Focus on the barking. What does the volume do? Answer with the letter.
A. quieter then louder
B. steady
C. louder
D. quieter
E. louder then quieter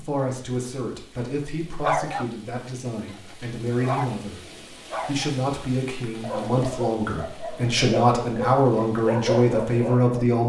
A.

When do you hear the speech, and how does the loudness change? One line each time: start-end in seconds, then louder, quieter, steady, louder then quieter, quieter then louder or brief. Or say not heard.
0.0-10.4 louder.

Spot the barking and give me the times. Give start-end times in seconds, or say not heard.
1.8-5.3, 6.2-10.2.